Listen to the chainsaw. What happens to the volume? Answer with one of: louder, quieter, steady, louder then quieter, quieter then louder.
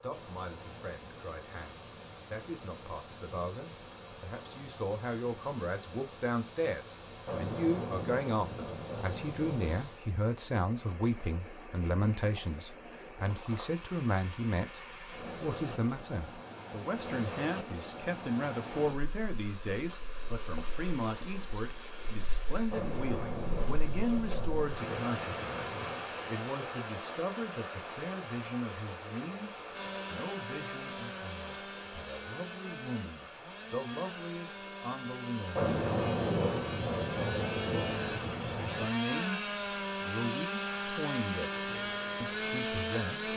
louder.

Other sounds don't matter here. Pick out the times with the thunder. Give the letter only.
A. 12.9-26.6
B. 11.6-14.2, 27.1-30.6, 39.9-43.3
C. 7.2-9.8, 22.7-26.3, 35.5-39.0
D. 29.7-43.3
C.